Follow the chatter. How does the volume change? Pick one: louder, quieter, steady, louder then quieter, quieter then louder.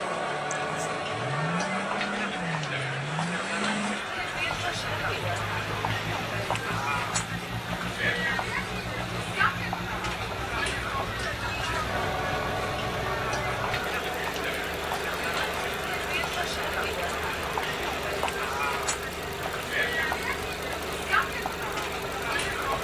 steady.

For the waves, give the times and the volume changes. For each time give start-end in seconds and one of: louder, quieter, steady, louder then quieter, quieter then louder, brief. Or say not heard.
not heard.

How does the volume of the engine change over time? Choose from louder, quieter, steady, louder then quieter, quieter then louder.
steady.